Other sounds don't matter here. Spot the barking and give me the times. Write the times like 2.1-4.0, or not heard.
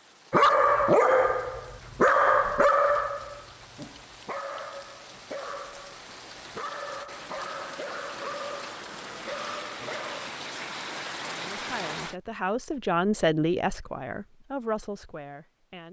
0.3-10.3.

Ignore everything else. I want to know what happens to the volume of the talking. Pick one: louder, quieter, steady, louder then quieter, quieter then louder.
louder then quieter.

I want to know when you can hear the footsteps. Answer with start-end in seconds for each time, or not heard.
not heard.